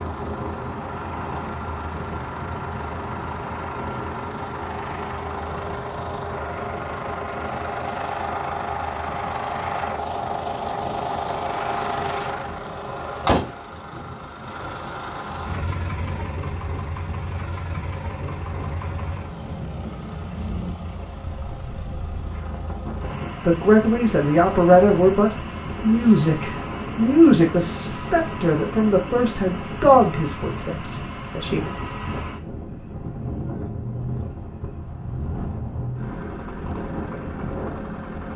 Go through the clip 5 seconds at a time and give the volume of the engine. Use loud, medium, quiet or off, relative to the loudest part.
medium, loud, loud, medium, medium, medium, medium, medium.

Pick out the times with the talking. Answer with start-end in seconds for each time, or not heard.
23.4-31.6.